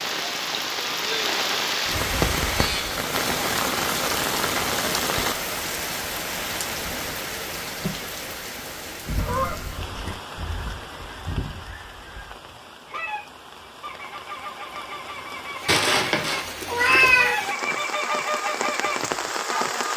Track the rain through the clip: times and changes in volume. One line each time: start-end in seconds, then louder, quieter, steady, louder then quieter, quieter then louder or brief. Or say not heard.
0.0-19.9 quieter then louder.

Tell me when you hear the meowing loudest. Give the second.
17 s.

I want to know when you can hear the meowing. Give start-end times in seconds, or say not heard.
15.7-17.4.